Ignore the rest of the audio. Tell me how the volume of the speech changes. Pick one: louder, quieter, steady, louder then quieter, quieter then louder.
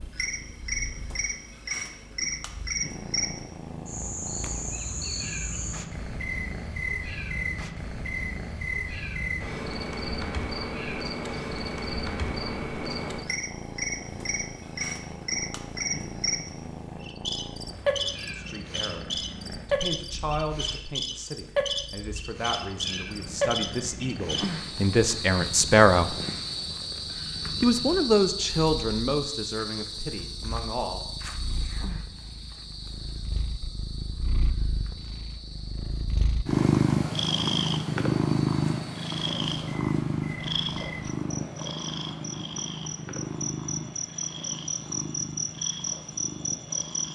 louder then quieter.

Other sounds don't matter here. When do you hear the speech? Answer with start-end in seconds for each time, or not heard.
18.4-26.1, 27.6-31.0.